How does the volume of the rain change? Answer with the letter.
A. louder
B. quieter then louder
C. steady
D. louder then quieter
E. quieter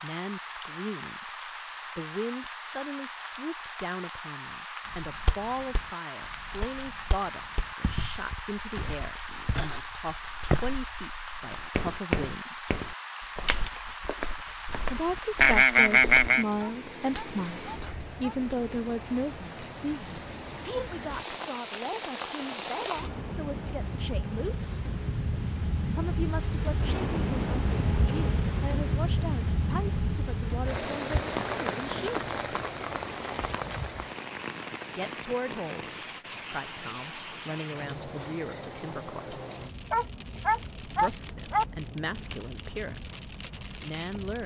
D.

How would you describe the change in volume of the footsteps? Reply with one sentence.
The volume of the footsteps goes up, then down.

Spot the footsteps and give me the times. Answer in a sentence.
You can hear the footsteps from 4.8 to 16.3 s.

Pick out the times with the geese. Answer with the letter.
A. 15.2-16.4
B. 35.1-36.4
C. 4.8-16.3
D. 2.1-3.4
A.